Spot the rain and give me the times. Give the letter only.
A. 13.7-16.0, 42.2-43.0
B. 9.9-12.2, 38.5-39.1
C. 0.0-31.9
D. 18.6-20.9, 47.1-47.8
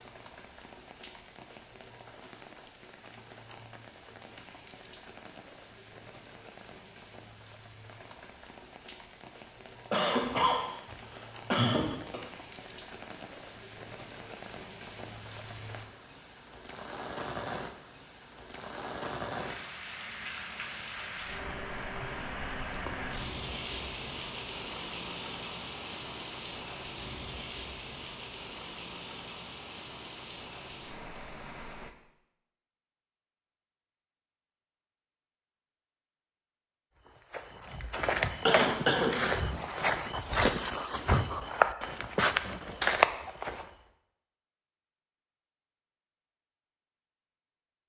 C.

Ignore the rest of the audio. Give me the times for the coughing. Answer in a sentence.
You can hear the coughing from 9.9 to 12.2 s and from 38.5 to 39.1 s.